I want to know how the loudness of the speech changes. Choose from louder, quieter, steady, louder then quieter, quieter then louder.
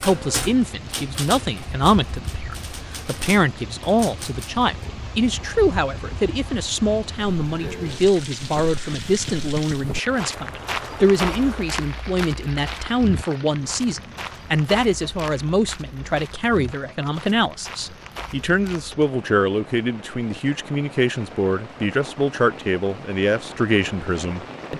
steady.